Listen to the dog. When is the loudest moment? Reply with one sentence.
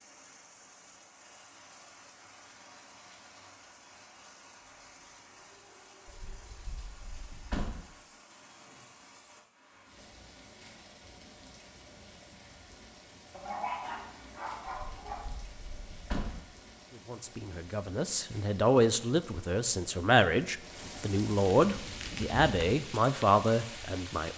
The loudest moment of the dog is at 14 seconds.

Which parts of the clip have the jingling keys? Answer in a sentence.
You can hear the jingling keys from 6.0 to 7.8 s and from 14.7 to 16.4 s.